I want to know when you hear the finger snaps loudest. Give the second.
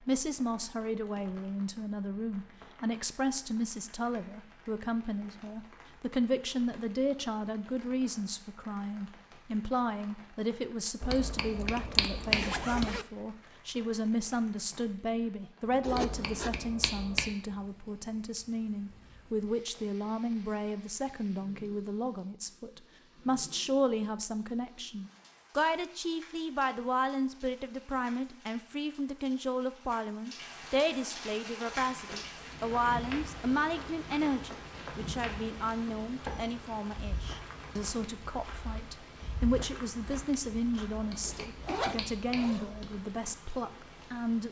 12 s.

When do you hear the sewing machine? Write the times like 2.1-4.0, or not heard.
not heard.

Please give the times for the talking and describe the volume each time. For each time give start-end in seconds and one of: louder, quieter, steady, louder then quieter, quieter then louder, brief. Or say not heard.
0.1-44.4 steady.